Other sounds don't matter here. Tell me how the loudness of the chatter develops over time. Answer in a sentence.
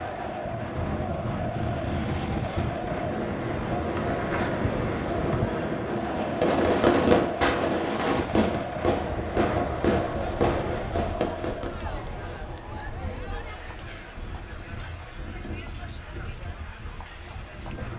The loudness of the chatter goes down.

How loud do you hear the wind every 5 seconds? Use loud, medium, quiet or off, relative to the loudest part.
loud, loud, quiet, quiet.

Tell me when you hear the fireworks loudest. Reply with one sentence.
The loudest moment of the fireworks is at 7 seconds.